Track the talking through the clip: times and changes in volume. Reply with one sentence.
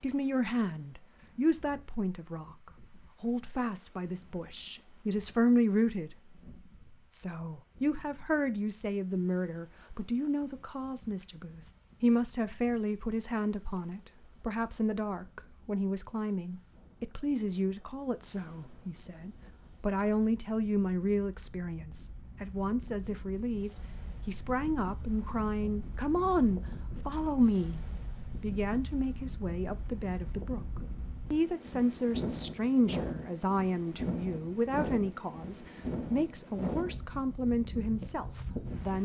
The talking can be heard from 0.0 to 39.0 s, at a steady volume.